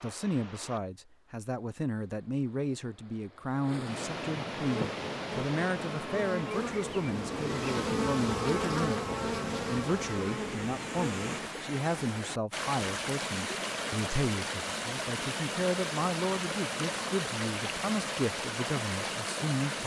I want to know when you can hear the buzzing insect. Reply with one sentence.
You can hear the buzzing insect from 4.5 to 11.5 s.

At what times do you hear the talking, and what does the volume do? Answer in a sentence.
The talking can be heard from 0.0 to 19.8 s, at a steady volume.